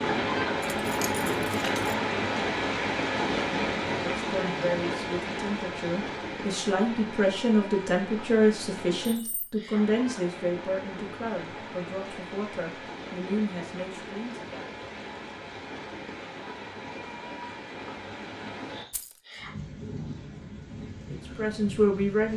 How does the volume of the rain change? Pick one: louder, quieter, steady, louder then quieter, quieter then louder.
quieter.